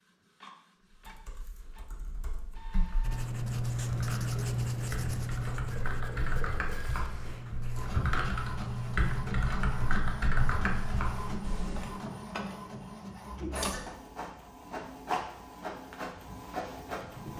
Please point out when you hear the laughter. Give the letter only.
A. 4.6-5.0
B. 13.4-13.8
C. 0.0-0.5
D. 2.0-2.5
B.